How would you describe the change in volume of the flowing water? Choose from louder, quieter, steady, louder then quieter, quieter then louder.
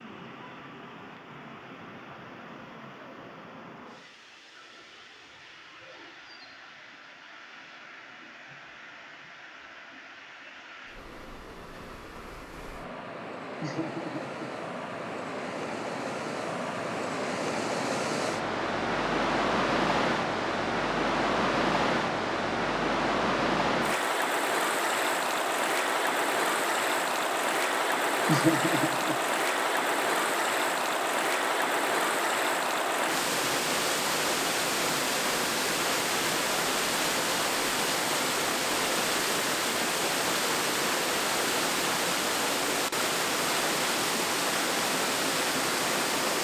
louder.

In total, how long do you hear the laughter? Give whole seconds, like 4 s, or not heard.
2 s.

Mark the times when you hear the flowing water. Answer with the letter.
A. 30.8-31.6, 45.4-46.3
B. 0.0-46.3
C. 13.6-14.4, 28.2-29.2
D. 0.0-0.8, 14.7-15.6
B.